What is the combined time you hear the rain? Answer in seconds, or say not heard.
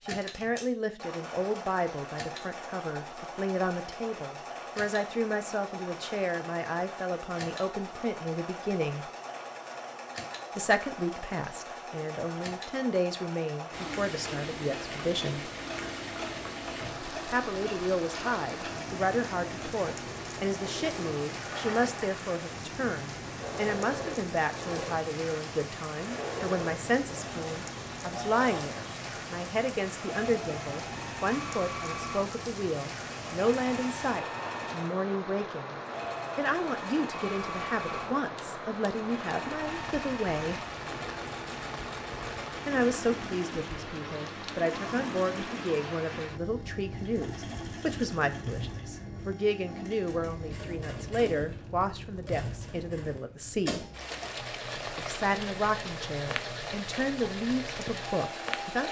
45 s.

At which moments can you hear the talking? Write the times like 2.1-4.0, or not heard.
0.1-9.1, 10.6-15.5, 17.3-35.8, 36.4-40.6, 42.6-53.9, 55.0-58.8.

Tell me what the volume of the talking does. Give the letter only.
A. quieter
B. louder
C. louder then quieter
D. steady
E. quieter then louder
D.